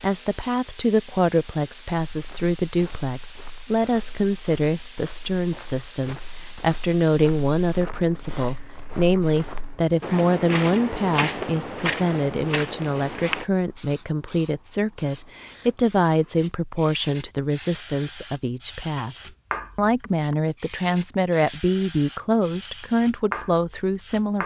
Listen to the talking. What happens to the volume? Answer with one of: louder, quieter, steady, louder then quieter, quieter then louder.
steady.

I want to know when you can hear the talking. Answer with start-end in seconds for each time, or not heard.
0.0-19.1, 19.8-24.4.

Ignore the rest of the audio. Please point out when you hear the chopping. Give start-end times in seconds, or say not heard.
not heard.